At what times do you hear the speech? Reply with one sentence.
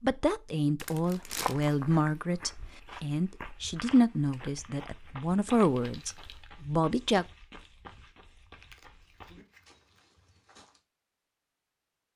The speech can be heard from 0.0 to 7.2 s.